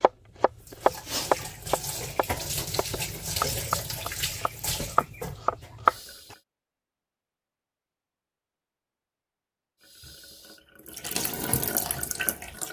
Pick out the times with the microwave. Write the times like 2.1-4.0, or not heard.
not heard.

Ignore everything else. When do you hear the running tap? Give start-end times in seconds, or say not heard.
0.0-6.4, 9.8-12.6.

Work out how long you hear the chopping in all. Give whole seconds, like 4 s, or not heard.
6 s.